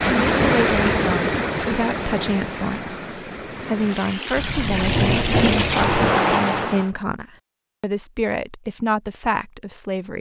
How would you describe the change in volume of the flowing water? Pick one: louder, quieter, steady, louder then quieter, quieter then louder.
quieter then louder.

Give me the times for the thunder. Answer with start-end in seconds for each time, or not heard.
4.3-6.1.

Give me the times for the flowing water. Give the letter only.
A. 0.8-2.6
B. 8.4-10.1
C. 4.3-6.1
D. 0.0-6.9
D.